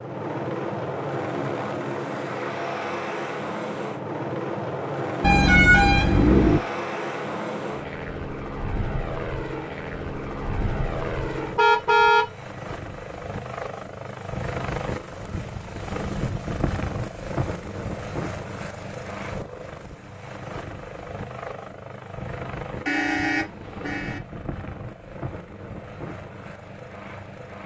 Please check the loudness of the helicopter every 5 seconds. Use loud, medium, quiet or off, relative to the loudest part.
loud, loud, loud, loud, medium, medium.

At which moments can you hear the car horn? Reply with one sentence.
The car horn can be heard from 5.2 to 6.6 s, from 11.6 to 12.3 s and from 22.9 to 24.2 s.